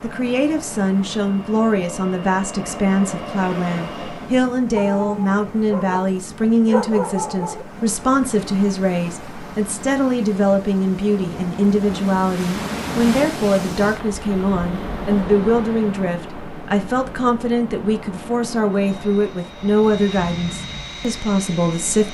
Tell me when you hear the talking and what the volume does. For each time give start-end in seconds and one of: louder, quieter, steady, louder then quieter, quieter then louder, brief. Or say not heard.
0.0-22.1 steady.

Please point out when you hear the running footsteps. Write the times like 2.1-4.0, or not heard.
not heard.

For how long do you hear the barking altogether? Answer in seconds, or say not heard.
3 s.